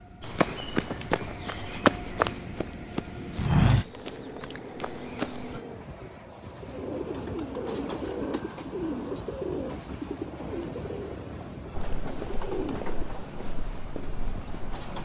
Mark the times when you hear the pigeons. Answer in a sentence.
You can hear the pigeons from 6.5 to 13.2 s.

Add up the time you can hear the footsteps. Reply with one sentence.
The footsteps can be heard for 9 seconds in total.